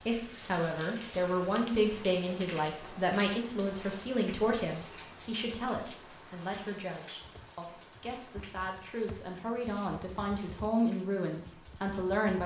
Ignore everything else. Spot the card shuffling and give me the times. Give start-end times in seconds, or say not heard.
not heard.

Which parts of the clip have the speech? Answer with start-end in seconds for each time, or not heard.
0.0-12.4.